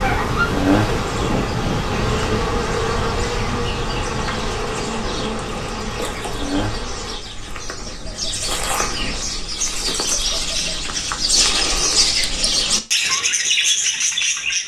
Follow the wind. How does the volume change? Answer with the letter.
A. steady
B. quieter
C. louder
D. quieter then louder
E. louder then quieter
B.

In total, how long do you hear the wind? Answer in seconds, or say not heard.
9 s.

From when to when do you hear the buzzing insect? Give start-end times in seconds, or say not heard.
0.0-7.2.